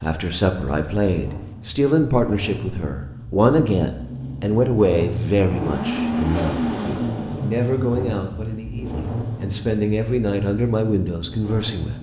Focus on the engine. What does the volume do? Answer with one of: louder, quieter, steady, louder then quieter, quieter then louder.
louder then quieter.